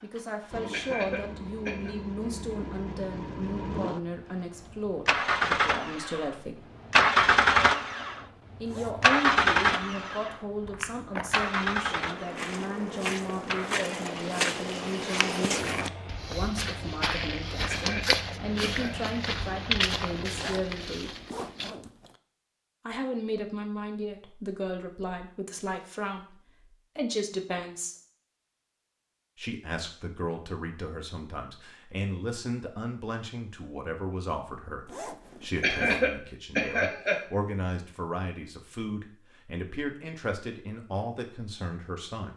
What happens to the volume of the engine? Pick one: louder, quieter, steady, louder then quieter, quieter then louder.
louder then quieter.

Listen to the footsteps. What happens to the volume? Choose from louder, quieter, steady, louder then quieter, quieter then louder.
louder.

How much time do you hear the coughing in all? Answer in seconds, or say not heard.
4 s.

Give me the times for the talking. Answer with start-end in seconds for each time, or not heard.
0.0-6.7, 8.6-21.1, 22.9-27.9, 29.4-42.3.